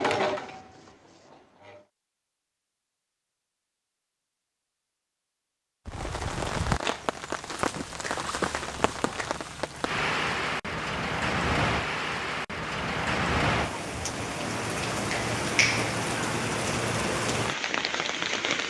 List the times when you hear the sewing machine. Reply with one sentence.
You can hear the sewing machine from 0.0 to 1.9 s.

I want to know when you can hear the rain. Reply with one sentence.
The rain can be heard from 5.8 to 18.6 s.